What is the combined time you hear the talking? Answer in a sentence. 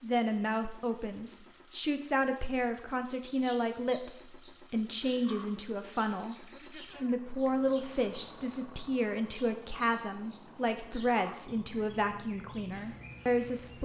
You can hear the talking for 14 seconds altogether.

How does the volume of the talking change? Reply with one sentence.
The loudness of the talking stays about the same.